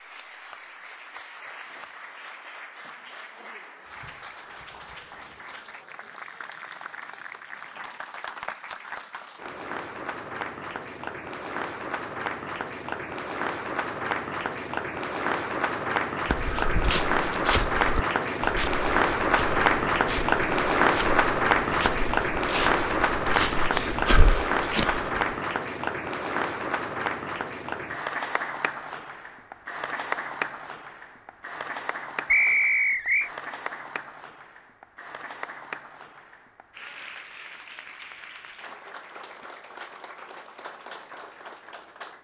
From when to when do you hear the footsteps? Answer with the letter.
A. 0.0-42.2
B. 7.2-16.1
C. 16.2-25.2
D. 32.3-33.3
C.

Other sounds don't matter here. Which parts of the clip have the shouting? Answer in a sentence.
You can't hear the shouting here.